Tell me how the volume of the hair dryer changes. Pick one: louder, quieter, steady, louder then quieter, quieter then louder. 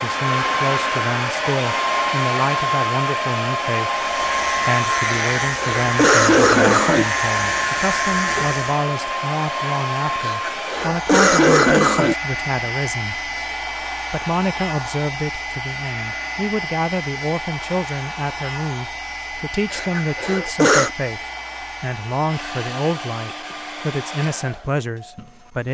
quieter.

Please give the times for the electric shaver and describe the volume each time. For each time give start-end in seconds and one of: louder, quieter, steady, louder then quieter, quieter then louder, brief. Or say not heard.
4.0-8.9 steady.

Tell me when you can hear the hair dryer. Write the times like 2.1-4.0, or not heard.
0.0-25.6.